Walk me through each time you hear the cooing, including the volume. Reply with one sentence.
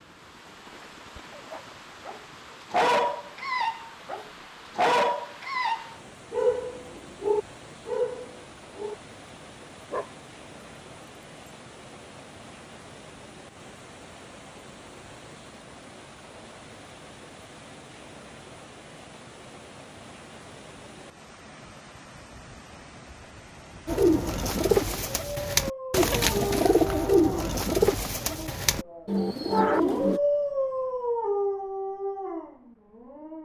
The cooing can be heard from 23.9 to 30.2 s, at a steady volume.